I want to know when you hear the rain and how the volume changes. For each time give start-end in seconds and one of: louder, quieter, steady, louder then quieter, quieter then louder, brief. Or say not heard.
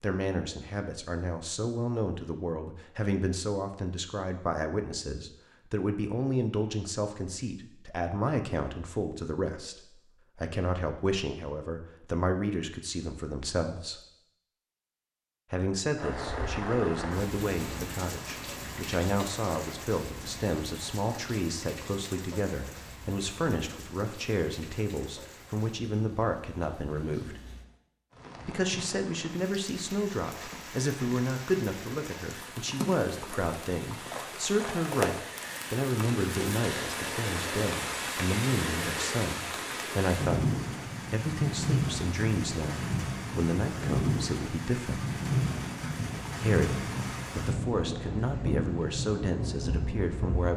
15.9-50.5 quieter then louder.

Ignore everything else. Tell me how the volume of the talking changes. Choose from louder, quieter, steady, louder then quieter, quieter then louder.
steady.